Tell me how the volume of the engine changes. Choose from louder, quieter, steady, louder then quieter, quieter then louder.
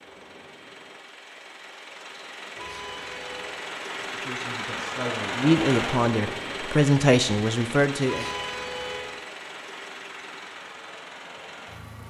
louder then quieter.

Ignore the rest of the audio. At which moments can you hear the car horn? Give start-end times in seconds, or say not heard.
2.5-3.6, 8.1-9.2.